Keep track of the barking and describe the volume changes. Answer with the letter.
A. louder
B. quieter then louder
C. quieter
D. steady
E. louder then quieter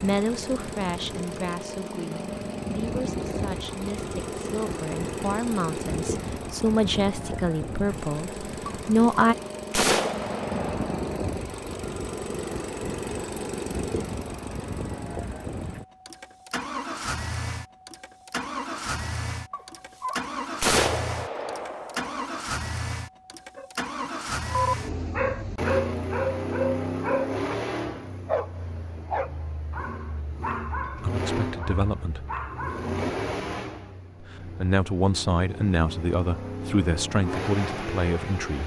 C.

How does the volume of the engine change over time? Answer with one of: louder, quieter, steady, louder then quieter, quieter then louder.
steady.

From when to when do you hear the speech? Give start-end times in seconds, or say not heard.
0.0-9.3, 31.0-32.2, 34.5-38.6.